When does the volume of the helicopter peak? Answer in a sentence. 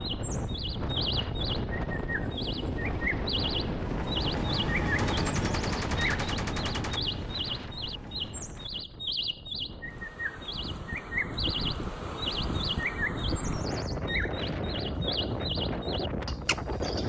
The loudest moment of the helicopter is at 5 seconds.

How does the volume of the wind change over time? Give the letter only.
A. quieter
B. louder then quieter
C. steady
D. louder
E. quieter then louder
E.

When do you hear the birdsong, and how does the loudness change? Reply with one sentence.
The birdsong can be heard from 0.0 to 17.0 s, at a steady volume.